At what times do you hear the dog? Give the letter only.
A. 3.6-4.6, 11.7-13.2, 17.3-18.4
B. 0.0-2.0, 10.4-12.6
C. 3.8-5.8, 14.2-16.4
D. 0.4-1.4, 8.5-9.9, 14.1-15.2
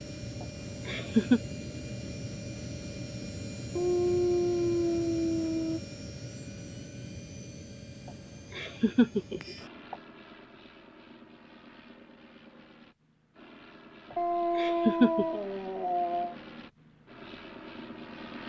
C.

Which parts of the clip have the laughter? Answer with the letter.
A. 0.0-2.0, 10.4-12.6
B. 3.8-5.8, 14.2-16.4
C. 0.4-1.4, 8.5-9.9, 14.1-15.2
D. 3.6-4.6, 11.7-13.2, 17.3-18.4
C.